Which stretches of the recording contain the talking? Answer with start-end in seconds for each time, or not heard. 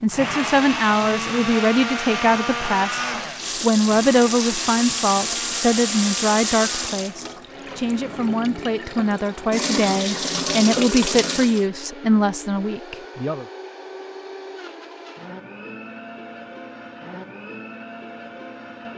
0.0-13.4.